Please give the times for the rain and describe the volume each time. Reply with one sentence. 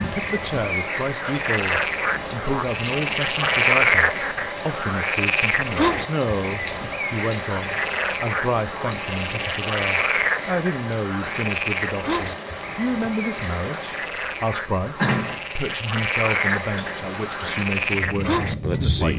The rain can be heard from 0.0 to 19.1 s, at a steady volume.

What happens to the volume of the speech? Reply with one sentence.
The volume of the speech stays about the same.